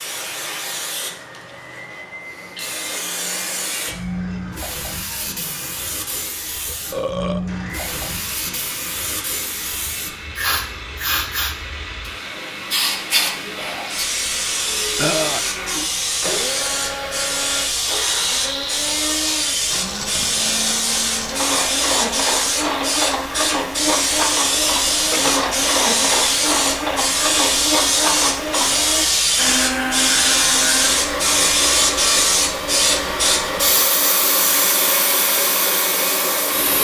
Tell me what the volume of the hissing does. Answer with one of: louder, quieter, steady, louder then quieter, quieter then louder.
louder.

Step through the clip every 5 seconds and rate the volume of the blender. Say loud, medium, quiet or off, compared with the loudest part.
quiet, quiet, medium, medium, loud, loud, loud, loud.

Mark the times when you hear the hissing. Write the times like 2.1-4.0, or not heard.
0.0-36.7.